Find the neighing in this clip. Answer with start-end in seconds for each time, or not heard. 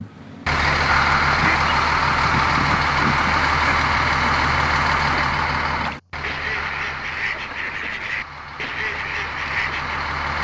not heard.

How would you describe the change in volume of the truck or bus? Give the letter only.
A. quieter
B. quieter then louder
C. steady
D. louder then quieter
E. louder
A.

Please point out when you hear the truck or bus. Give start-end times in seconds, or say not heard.
0.0-10.3.